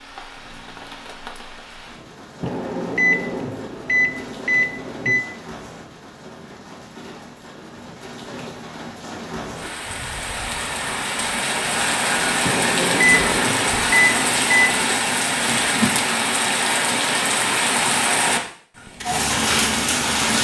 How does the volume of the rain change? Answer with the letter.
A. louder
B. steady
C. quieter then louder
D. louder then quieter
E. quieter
A.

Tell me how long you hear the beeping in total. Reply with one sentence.
You can hear the beeping for 5 seconds altogether.